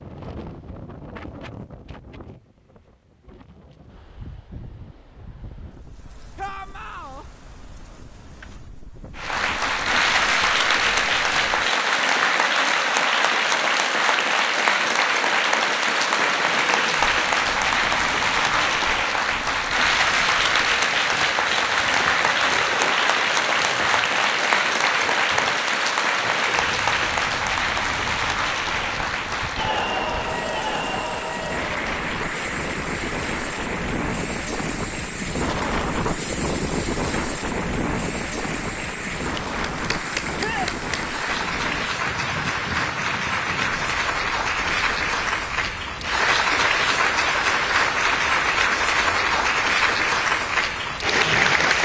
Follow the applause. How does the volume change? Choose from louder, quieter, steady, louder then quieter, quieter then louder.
quieter then louder.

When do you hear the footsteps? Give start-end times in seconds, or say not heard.
not heard.